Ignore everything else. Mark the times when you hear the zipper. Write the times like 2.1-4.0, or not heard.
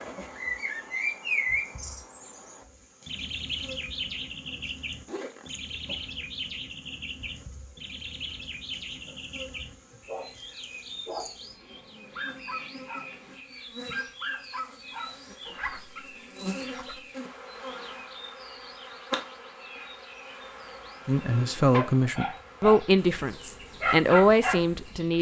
5.0-5.5, 15.4-17.0.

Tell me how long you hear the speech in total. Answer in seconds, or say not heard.
4 s.